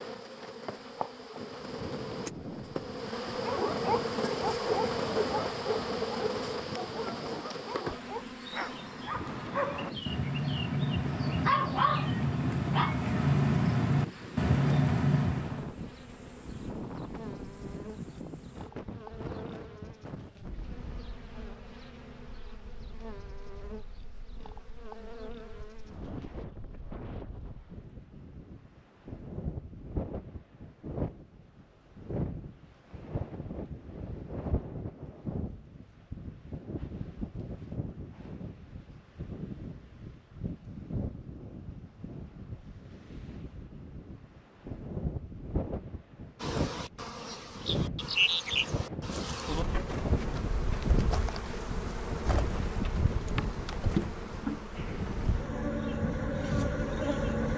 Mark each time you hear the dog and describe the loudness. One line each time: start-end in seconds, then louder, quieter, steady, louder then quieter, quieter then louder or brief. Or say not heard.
3.4-15.7 quieter then louder.